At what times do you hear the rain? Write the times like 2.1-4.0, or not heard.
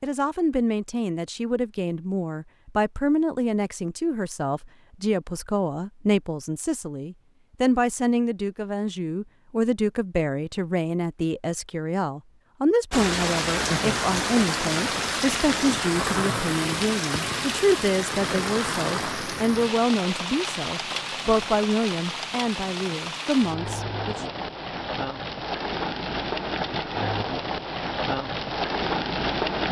12.9-29.6.